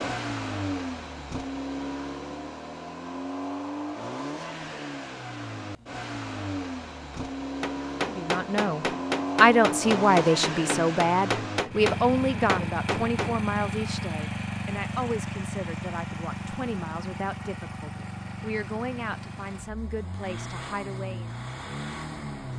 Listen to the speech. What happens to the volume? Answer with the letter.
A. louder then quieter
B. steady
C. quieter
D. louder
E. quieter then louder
C.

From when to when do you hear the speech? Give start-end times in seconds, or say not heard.
8.0-21.3.